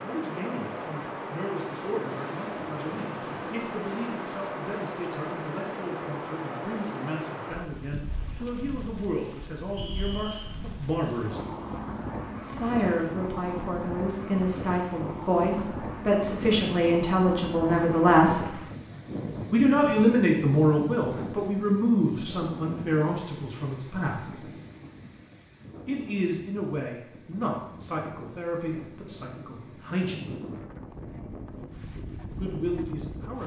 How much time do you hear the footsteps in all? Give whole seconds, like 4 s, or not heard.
not heard.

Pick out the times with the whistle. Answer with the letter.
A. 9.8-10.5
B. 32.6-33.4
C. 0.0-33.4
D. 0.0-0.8
A.